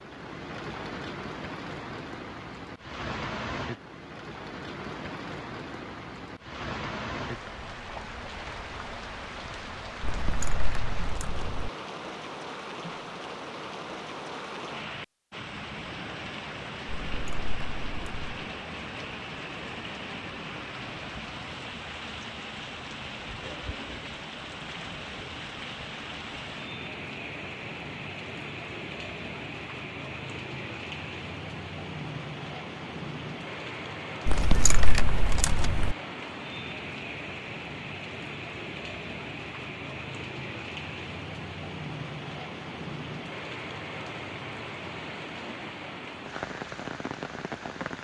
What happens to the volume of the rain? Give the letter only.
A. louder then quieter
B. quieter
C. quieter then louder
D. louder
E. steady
E.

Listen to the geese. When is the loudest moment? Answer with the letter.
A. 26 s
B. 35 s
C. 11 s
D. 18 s
B.